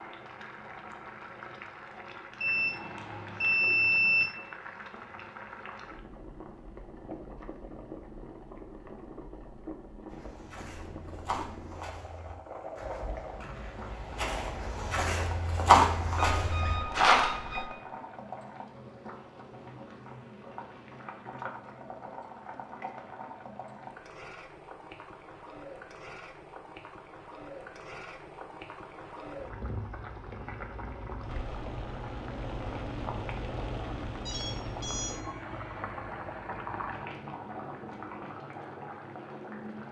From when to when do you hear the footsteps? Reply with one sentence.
The footsteps can be heard from 10.1 to 17.3 s.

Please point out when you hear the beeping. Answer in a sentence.
You can hear the beeping from 2.4 to 4.2 s, from 16.1 to 17.7 s and from 34.2 to 35.2 s.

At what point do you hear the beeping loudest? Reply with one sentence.
The volume of the beeping peaks at 4 seconds.